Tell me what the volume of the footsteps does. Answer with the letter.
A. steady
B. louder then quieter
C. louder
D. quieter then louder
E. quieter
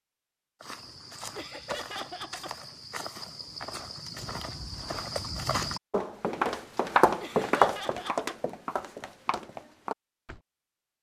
B.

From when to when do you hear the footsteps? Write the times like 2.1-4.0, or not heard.
0.6-10.4.